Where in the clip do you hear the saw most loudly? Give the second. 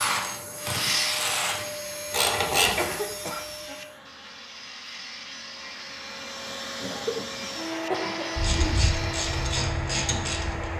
1 s.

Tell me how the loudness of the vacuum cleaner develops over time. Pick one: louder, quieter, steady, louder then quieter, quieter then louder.
quieter then louder.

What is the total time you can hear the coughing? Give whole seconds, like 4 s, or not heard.
3 s.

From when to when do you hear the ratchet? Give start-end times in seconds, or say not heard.
0.0-3.0, 8.3-10.7.